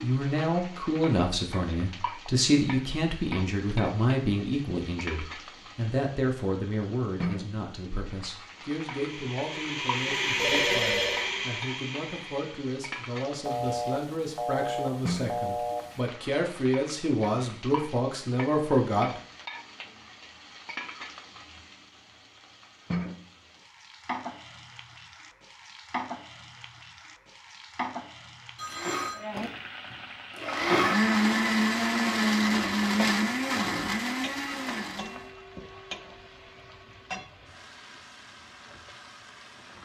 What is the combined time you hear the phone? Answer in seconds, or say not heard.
4 s.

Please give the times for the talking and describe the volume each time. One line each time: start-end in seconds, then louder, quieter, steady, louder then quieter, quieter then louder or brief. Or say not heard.
0.0-19.2 quieter then louder.